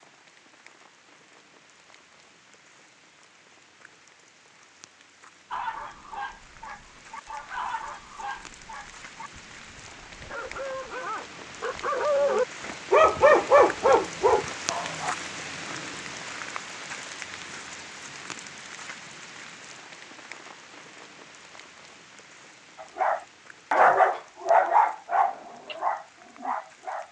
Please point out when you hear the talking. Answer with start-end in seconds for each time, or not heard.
not heard.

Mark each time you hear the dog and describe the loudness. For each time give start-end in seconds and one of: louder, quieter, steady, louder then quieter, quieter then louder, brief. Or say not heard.
5.5-15.2 louder
22.9-27.0 quieter.